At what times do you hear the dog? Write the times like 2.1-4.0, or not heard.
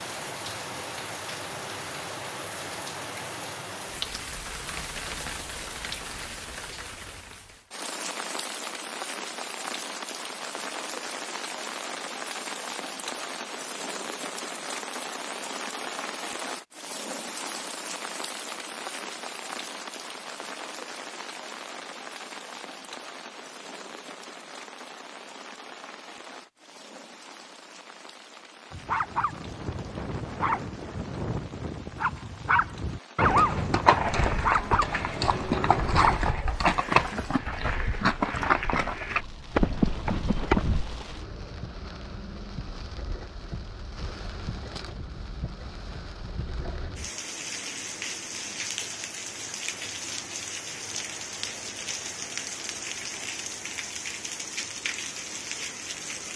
28.7-36.2.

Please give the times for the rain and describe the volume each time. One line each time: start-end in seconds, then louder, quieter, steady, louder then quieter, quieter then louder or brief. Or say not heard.
0.0-56.3 quieter then louder.